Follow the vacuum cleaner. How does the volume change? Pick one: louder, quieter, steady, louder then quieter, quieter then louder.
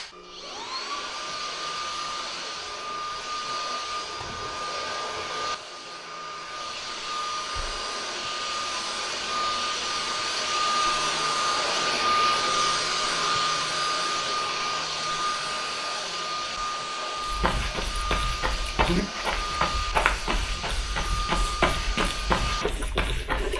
louder then quieter.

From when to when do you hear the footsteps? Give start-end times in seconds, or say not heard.
17.2-23.5.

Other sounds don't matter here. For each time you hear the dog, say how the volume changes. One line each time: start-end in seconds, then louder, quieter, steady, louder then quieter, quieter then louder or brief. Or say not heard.
not heard.